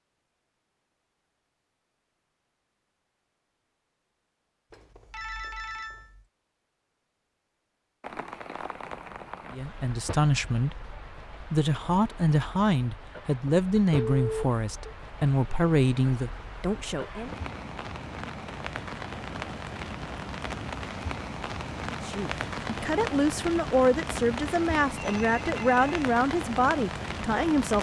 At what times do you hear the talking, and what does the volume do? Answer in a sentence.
You can hear the talking from 9.5 to 17.3 s, at a steady volume; and from 22.1 to 27.7 s, at a steady volume.